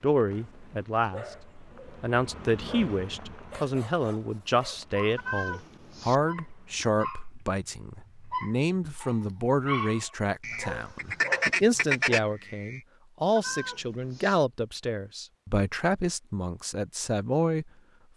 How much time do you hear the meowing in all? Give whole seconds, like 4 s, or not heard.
2 s.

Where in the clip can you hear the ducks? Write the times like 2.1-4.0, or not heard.
10.4-12.8.